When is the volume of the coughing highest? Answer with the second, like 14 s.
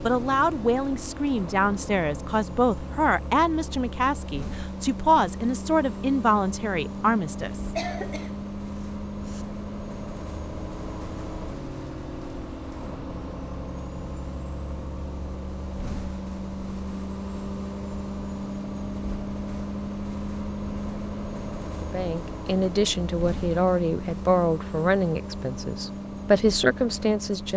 8 s.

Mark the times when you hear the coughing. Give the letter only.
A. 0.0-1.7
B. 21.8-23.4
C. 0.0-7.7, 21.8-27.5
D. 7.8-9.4
D.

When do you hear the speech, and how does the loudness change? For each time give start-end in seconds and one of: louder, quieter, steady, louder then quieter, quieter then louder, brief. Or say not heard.
0.0-7.7 steady
21.8-27.5 quieter then louder.